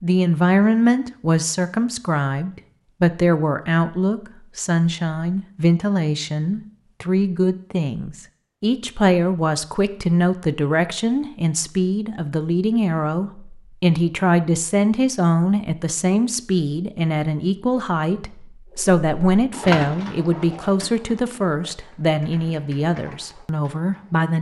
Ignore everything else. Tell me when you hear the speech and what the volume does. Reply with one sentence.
The speech can be heard from 0.0 to 24.3 s, at a steady volume.